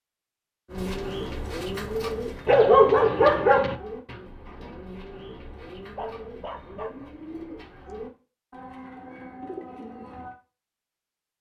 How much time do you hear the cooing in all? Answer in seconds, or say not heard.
10 s.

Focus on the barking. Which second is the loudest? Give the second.
3 s.